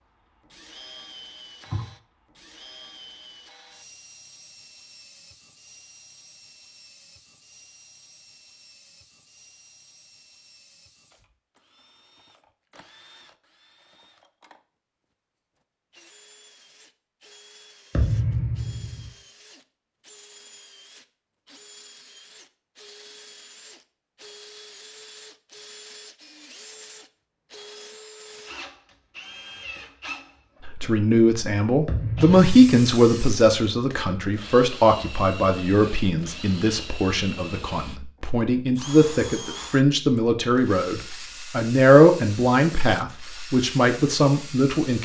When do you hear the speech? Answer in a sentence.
You can hear the speech from 30.6 to 45.0 s.